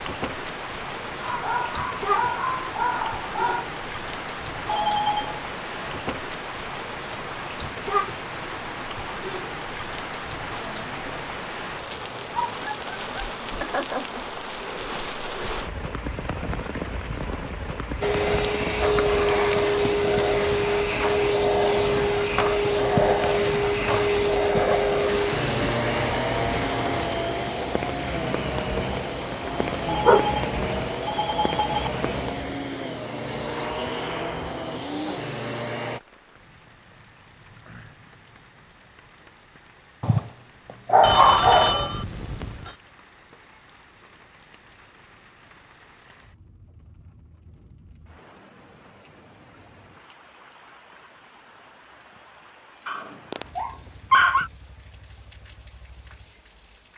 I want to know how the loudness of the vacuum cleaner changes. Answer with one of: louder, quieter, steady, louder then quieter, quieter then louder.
quieter.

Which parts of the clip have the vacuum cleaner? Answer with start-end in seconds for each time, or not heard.
18.0-36.0.